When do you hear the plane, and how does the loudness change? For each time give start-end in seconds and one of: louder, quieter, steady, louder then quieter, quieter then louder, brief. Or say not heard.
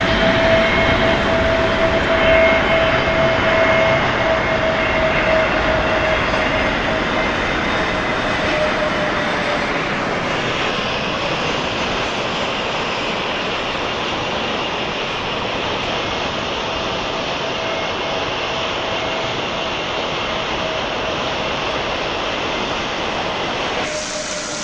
0.0-24.5 quieter.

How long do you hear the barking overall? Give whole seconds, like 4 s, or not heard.
not heard.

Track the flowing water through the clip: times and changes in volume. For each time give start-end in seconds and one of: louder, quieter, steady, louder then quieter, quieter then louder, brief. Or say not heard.
0.0-24.5 steady.